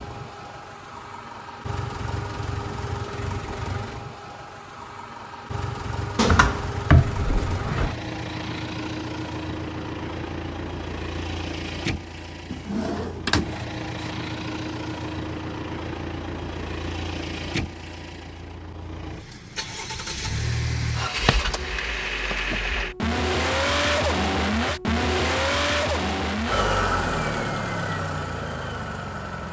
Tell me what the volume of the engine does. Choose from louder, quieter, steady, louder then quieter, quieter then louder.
louder.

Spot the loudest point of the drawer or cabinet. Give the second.
7 s.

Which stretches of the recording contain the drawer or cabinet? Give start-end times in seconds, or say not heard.
6.2-8.0, 12.5-13.6, 20.6-21.4.